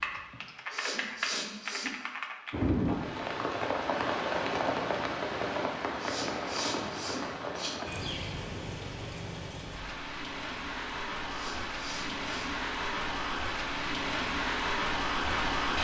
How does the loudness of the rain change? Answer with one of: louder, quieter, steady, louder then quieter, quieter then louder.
quieter then louder.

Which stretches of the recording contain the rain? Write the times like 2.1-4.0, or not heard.
2.5-15.7.